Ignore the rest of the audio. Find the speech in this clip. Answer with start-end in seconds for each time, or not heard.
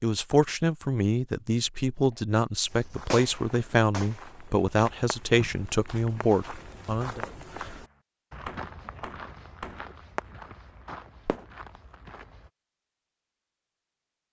0.0-7.2.